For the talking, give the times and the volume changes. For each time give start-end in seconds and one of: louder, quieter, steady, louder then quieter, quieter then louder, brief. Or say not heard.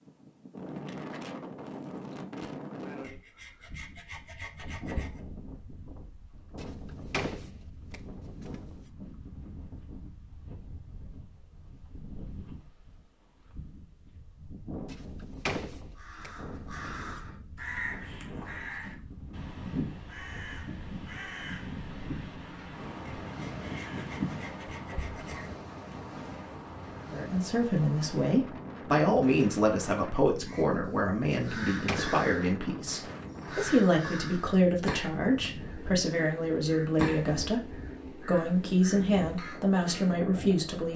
27.1-40.9 steady.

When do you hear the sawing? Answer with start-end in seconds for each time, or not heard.
3.0-5.2, 23.2-25.5.